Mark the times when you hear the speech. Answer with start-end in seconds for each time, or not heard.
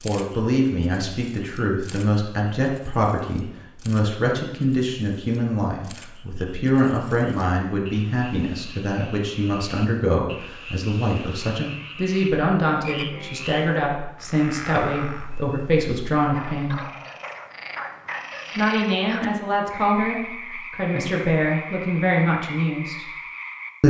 0.0-16.9, 18.6-23.1.